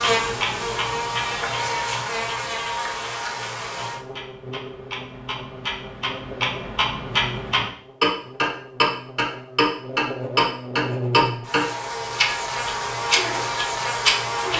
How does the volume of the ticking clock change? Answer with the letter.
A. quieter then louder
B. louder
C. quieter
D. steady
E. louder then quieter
A.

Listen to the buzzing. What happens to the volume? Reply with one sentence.
The loudness of the buzzing goes down, then up.